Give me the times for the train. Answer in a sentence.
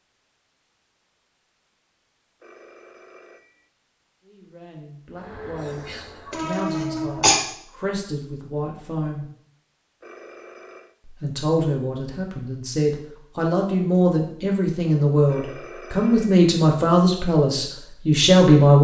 You can hear the train from 5.2 to 7.4 s.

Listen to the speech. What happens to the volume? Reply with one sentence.
The volume of the speech goes up.